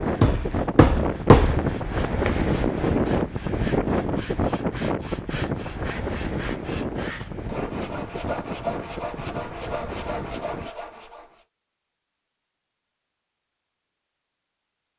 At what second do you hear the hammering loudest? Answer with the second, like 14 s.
1 s.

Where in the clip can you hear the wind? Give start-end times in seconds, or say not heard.
0.0-10.7.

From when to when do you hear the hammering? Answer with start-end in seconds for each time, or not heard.
0.0-2.4.